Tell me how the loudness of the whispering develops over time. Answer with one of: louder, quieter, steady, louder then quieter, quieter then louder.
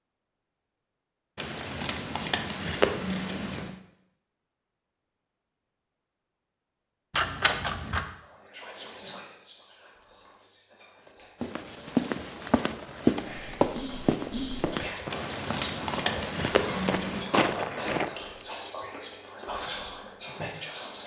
louder.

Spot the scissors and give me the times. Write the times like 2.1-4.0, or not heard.
1.4-3.8, 7.1-8.1, 15.1-17.3.